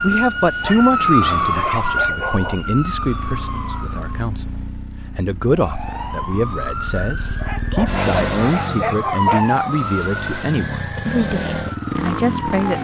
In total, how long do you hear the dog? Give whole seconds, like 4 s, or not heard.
4 s.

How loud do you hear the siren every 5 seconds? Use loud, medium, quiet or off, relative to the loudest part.
loud, loud, medium.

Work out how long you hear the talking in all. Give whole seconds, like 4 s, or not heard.
12 s.